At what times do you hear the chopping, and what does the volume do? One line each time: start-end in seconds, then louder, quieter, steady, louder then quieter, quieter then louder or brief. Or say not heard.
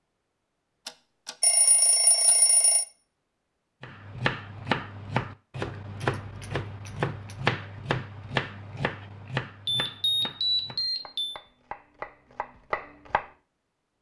3.8-13.3 quieter then louder.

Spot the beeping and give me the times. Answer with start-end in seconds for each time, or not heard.
1.4-2.9, 6.0-7.3, 9.7-11.4.